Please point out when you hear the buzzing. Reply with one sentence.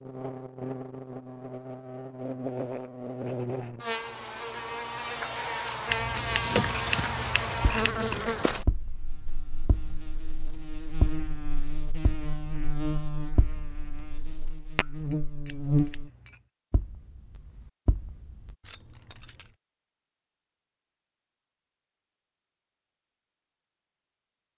You can hear the buzzing from 0.0 to 16.1 s.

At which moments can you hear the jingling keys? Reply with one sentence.
The jingling keys can be heard from 6.1 to 7.2 s and from 18.6 to 19.4 s.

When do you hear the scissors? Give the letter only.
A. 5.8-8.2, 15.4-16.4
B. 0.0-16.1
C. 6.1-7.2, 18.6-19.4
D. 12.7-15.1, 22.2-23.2
A.